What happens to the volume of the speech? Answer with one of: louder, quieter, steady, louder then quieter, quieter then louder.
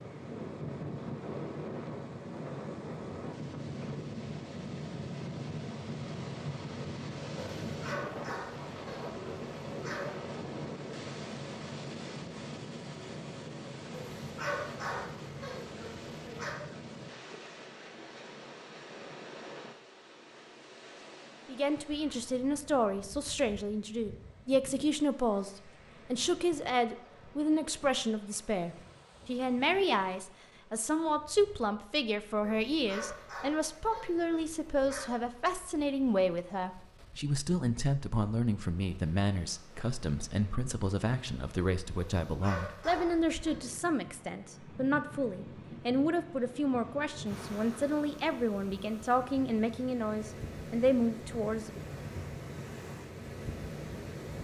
steady.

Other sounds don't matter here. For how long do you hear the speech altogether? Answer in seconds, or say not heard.
30 s.